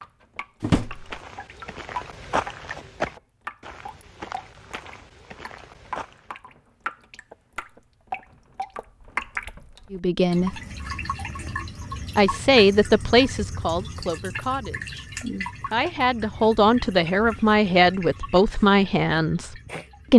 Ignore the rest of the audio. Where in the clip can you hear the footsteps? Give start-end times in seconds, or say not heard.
0.8-6.3.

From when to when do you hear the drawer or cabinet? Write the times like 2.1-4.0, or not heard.
0.6-1.1.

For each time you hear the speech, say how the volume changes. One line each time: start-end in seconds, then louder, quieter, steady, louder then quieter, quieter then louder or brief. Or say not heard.
9.9-10.6 brief
12.2-19.5 quieter then louder.